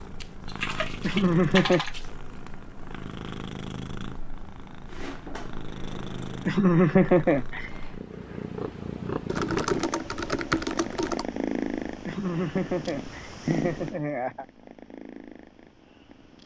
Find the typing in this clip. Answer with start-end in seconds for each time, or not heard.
0.5-1.9, 9.2-11.2.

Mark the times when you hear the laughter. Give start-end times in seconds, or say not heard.
1.0-1.9, 6.5-7.7, 12.1-14.4.